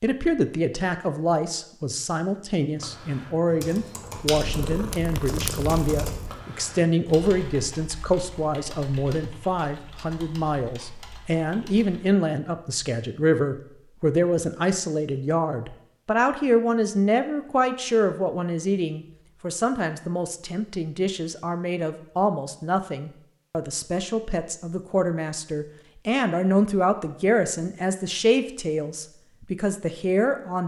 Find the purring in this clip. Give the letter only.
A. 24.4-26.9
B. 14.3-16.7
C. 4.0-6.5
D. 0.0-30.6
C.